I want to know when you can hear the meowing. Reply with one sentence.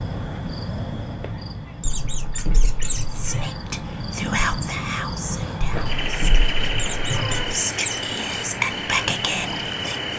You can hear the meowing from 1.9 to 3.5 s and from 5.6 to 7.5 s.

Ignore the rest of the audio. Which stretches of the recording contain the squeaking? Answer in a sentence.
The squeaking can be heard from 1.8 to 3.0 s and from 6.8 to 8.0 s.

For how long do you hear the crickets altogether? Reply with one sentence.
You can hear the crickets for 10 seconds altogether.